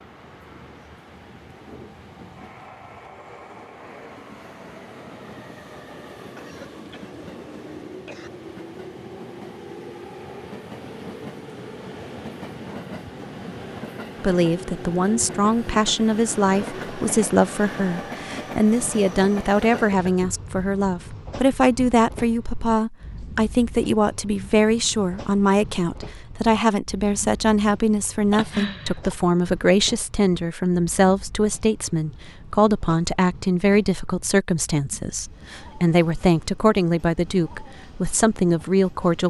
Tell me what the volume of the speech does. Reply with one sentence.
The loudness of the speech stays about the same.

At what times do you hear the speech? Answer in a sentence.
You can hear the speech from 14.2 to 39.2 s.